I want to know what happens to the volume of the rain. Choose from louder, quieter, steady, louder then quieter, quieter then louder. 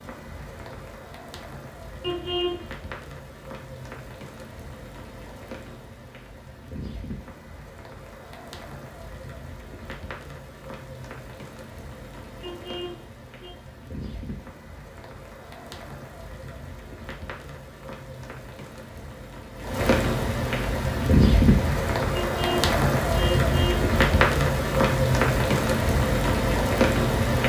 louder.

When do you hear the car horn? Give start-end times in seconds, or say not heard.
2.0-2.6, 12.4-13.6, 22.1-23.9.